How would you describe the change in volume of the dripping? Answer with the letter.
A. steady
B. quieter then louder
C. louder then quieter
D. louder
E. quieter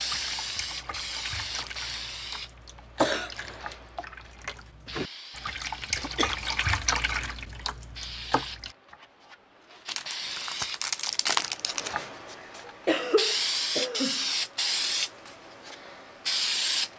D.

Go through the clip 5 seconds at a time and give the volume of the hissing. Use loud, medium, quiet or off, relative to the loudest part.
medium, quiet, loud, loud.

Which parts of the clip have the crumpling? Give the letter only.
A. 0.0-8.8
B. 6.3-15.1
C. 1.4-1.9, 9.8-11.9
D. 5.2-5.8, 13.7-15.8
C.